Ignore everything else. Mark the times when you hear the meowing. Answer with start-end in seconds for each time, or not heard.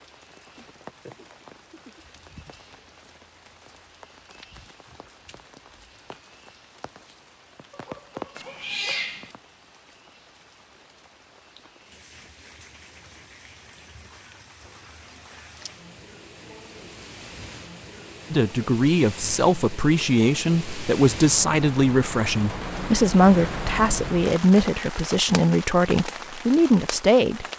8.3-9.3.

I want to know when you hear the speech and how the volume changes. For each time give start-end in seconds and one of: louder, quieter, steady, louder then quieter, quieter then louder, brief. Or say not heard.
18.3-27.4 steady.